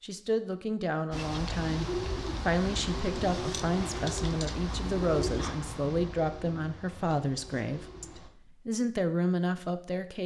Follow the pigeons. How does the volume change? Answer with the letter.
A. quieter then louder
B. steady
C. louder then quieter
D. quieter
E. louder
D.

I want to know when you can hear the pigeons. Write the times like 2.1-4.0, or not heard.
1.1-8.3.